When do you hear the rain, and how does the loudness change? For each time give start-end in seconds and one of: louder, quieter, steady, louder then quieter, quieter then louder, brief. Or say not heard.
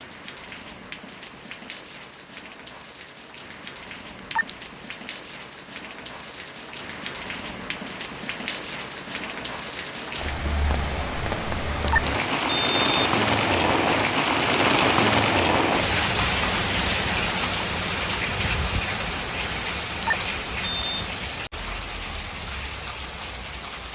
0.0-23.9 louder then quieter.